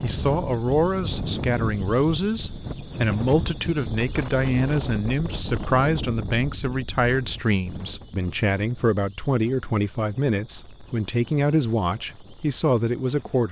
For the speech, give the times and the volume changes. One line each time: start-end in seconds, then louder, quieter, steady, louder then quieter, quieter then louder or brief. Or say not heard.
0.0-13.4 steady.